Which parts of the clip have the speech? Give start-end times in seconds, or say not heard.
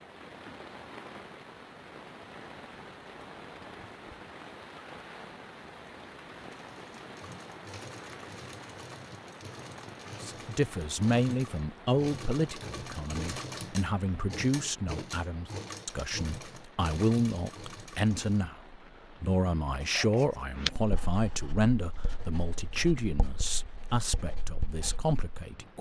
10.2-25.7.